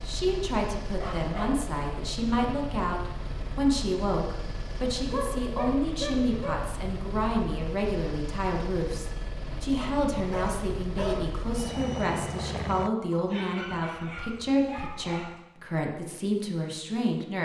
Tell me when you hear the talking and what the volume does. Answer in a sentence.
The talking can be heard from 0.0 to 17.3 s, at a steady volume.